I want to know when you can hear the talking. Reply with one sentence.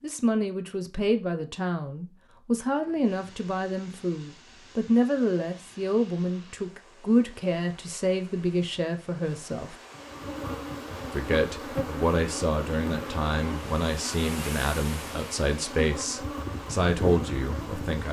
The talking can be heard from 0.0 to 9.8 s and from 11.1 to 18.0 s.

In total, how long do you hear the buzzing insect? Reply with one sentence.
The buzzing insect can be heard for 8 seconds in total.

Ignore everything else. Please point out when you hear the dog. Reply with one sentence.
The dog can't be heard in this clip.